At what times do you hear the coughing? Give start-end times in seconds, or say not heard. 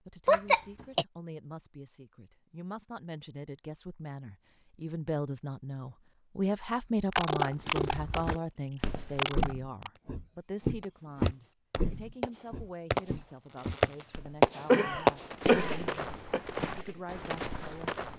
0.2-1.1, 7.1-8.4, 9.2-9.9, 14.7-16.4.